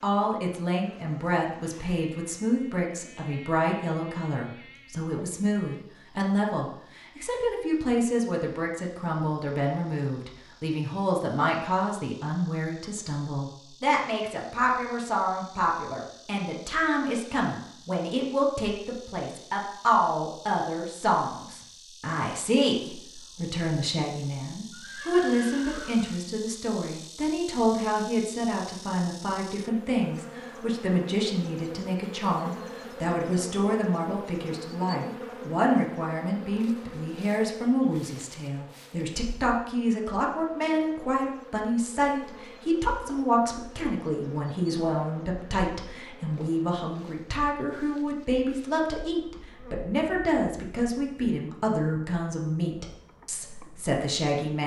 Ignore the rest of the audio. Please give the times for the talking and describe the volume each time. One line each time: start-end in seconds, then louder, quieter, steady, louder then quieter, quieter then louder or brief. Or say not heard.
0.0-54.6 steady.